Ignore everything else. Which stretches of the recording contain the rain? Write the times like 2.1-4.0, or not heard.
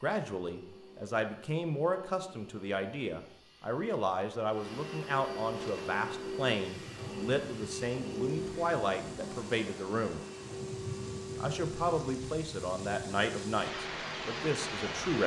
5.5-15.2.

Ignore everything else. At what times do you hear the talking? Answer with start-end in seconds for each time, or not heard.
0.0-10.2, 11.3-15.2.